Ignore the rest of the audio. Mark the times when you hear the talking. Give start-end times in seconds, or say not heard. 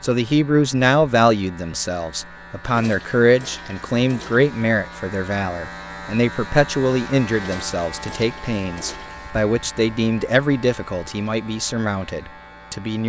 0.0-13.0.